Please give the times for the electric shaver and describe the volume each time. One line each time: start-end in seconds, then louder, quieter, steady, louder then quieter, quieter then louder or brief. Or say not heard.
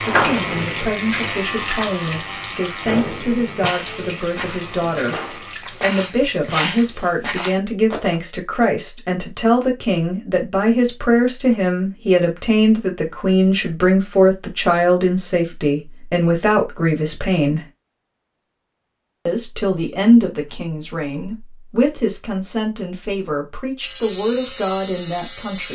0.0-5.5 quieter
23.8-25.7 brief.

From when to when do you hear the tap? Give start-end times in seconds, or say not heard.
0.0-7.2.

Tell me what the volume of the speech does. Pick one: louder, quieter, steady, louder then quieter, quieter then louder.
louder then quieter.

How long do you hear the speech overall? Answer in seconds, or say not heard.
24 s.